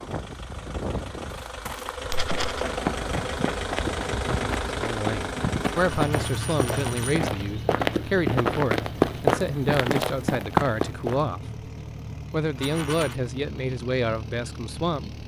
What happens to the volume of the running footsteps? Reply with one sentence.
The volume of the running footsteps goes up.